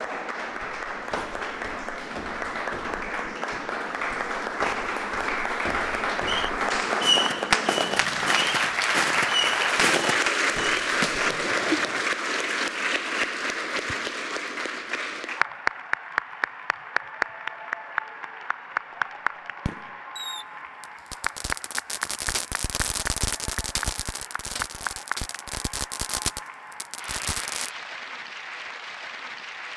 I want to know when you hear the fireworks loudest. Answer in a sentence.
The volume of the fireworks peaks at 7 seconds.